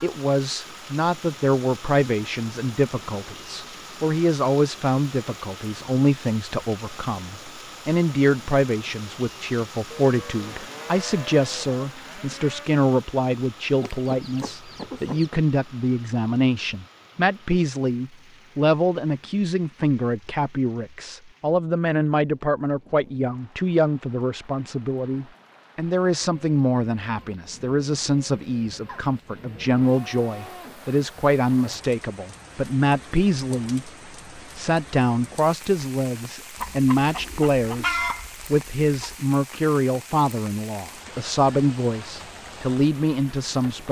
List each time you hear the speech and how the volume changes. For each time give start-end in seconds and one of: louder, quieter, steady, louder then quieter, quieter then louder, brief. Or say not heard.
0.0-43.8 steady.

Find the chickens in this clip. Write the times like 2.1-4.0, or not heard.
13.8-15.3, 36.5-39.1.